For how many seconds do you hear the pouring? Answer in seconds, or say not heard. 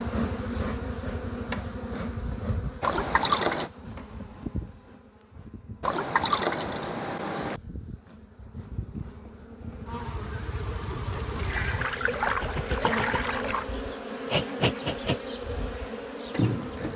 5 s.